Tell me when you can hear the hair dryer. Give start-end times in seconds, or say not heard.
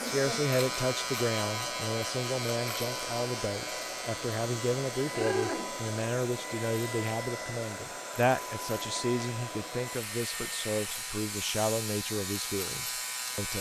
0.0-13.5.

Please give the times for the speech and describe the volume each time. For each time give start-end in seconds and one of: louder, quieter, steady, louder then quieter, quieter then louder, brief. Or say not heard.
0.0-13.5 steady.